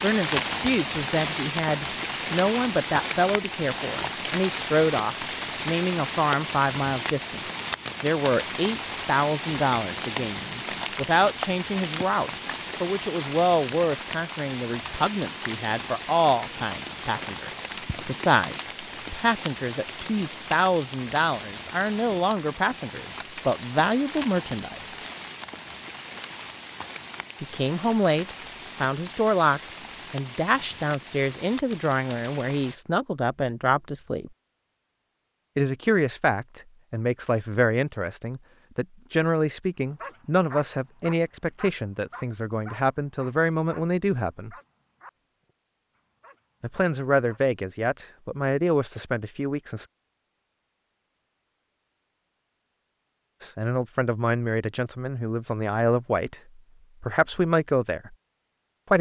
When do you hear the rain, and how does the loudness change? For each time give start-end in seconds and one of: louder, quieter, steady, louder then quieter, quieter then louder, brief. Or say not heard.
0.0-32.8 quieter.